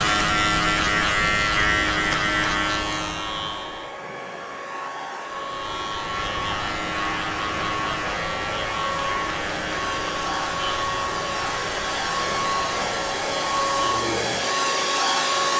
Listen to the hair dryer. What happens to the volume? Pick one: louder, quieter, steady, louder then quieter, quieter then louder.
louder.